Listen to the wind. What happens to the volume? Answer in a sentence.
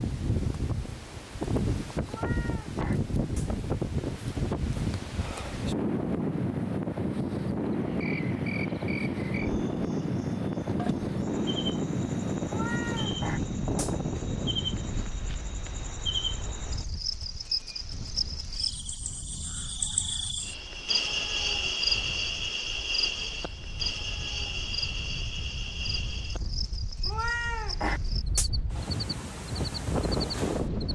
The loudness of the wind goes down, then up.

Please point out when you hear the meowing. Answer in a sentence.
You can hear the meowing from 2.0 to 3.5 s, from 12.5 to 13.9 s and from 27.1 to 28.5 s.